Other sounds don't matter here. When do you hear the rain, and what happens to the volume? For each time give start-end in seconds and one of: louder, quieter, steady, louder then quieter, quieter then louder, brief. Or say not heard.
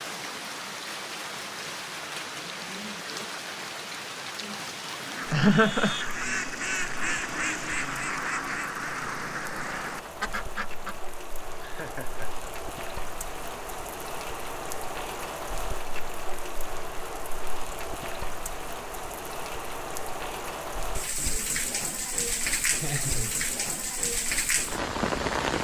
0.0-25.5 quieter then louder.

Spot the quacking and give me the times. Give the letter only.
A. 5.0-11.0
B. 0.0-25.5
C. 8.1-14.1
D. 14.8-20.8
A.